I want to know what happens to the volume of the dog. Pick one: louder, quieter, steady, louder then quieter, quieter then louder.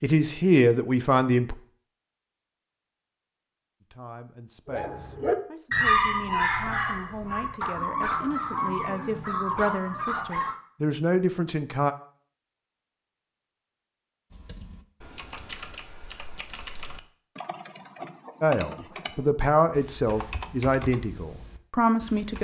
quieter.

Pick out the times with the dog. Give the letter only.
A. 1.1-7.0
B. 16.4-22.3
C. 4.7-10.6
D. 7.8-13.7
C.